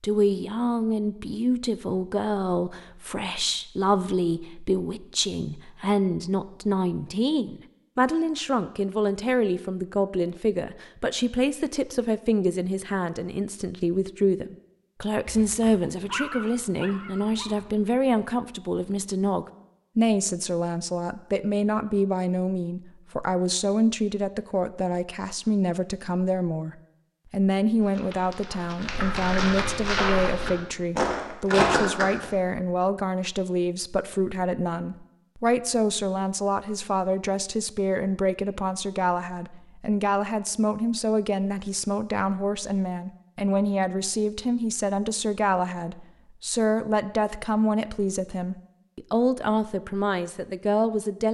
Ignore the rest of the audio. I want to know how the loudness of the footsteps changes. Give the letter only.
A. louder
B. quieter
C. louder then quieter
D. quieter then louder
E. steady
A.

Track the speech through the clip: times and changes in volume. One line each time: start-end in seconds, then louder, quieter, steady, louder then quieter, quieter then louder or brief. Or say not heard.
0.0-51.2 steady.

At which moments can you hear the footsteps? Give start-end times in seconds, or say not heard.
27.8-32.2.